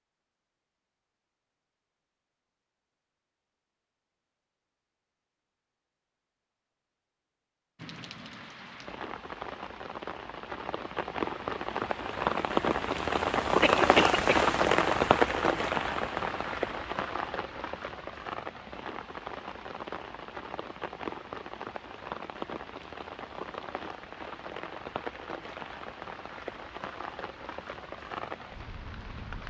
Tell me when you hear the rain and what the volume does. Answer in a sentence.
You can hear the rain from 7.8 to 29.4 s, getting louder then quieter.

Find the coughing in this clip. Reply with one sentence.
The coughing can be heard from 13.6 to 14.5 s.